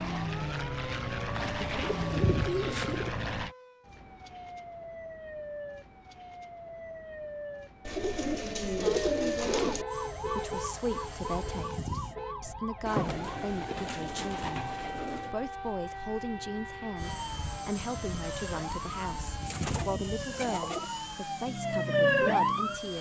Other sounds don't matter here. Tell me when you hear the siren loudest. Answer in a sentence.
The volume of the siren peaks at 22 seconds.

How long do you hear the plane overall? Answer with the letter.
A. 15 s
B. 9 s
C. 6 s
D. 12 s
D.